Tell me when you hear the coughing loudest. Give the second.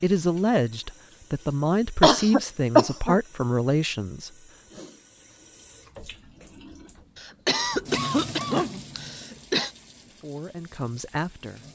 3 s.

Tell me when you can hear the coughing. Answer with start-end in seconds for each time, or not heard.
2.0-3.1, 7.2-9.7.